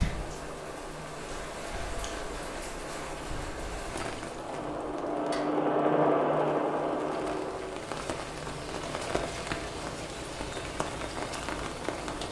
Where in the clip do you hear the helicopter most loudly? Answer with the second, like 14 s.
6 s.